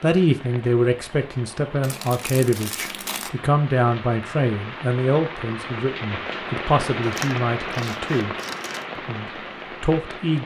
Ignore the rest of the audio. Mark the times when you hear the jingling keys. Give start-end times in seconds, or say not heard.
not heard.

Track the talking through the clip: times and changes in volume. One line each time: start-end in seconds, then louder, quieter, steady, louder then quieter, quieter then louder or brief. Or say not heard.
0.0-8.3 steady
8.9-10.4 brief.